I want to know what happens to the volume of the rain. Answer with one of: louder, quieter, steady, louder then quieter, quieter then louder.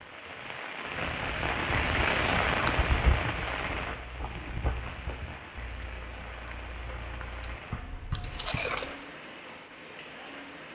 quieter.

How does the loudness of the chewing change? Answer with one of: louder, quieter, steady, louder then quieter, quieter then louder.
quieter then louder.